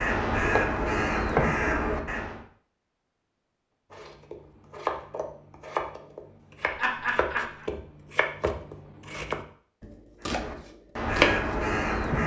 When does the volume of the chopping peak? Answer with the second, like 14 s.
11 s.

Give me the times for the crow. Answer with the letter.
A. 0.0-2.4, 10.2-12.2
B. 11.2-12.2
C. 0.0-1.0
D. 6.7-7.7
A.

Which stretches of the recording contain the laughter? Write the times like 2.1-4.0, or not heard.
6.7-7.7.